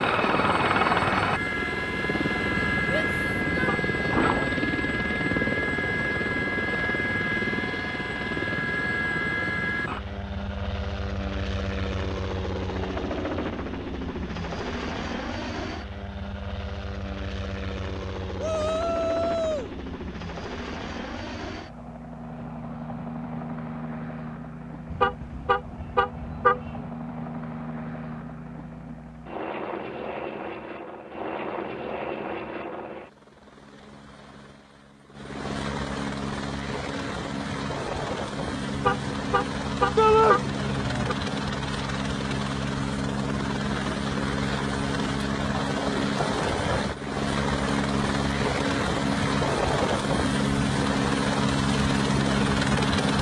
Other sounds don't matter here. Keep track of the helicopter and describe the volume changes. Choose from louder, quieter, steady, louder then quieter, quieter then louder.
quieter then louder.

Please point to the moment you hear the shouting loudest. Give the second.
40 s.